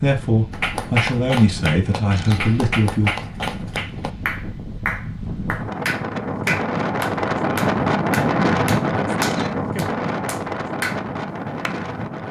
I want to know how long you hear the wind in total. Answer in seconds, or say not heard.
12 s.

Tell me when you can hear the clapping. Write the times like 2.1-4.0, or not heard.
0.5-11.8.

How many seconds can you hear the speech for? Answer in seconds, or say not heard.
3 s.